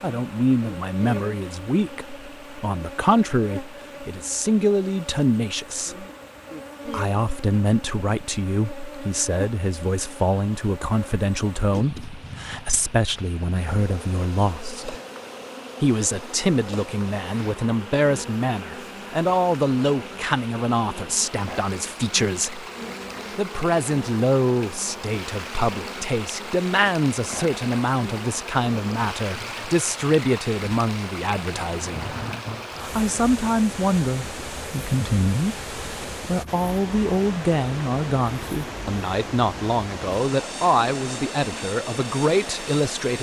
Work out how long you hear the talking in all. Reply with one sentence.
You can hear the talking for 40 seconds altogether.